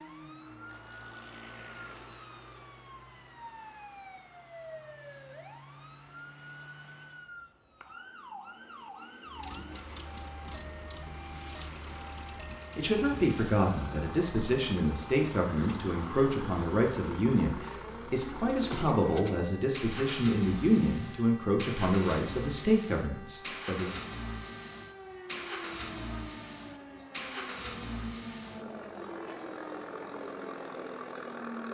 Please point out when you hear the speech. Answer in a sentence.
The speech can be heard from 12.8 to 23.9 s.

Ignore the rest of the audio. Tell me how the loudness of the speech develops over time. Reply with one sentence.
The volume of the speech stays about the same.